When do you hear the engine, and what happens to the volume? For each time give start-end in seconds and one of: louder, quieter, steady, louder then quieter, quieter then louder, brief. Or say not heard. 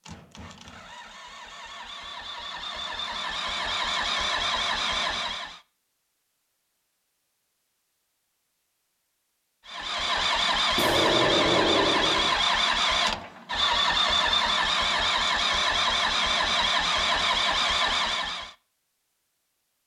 0.0-5.6 louder
9.7-18.6 steady.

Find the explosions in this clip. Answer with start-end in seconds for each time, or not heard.
10.8-12.3.